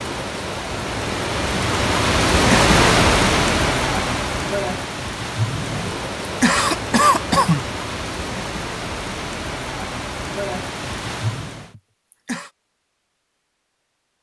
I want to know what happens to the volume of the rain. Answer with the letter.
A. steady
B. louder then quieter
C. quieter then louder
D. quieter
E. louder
D.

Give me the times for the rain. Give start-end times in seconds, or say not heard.
0.0-11.8.